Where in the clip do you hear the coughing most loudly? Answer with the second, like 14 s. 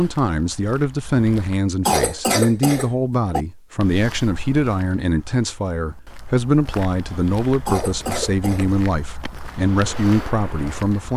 2 s.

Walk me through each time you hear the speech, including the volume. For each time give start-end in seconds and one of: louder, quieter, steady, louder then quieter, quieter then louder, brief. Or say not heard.
0.0-11.1 steady.